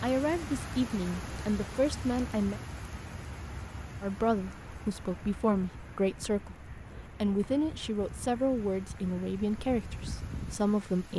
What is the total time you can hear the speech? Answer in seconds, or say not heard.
10 s.